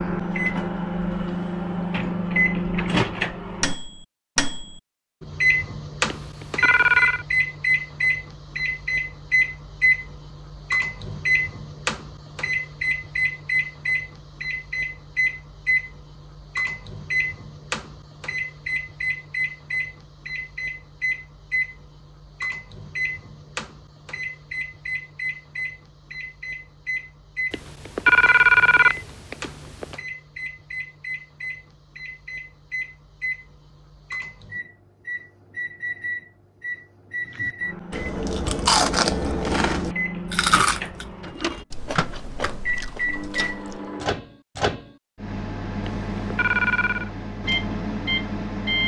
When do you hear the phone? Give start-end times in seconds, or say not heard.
6.1-7.2, 27.5-29.9, 45.9-47.1.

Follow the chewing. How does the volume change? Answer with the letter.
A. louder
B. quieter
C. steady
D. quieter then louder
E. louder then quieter
B.